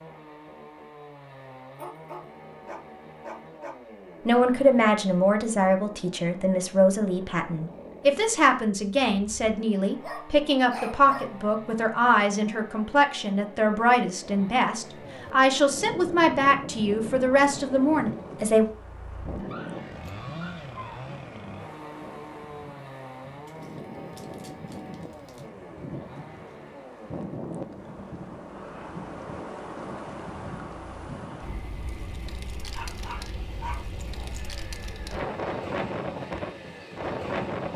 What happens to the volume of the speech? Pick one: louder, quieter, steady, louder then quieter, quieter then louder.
steady.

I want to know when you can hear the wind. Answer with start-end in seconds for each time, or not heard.
14.9-37.7.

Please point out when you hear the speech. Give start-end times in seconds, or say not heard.
4.2-18.6.